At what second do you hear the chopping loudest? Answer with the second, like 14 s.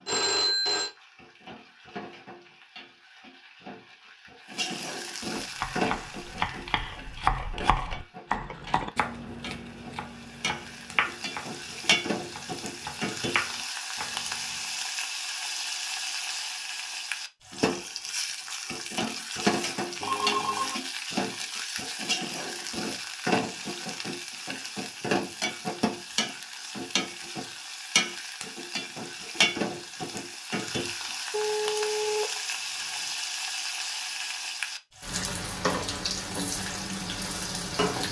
7 s.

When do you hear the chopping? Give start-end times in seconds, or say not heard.
5.3-14.8.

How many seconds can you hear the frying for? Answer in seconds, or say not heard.
38 s.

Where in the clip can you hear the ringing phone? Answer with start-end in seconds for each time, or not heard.
0.1-0.9, 20.0-20.8, 31.3-32.8.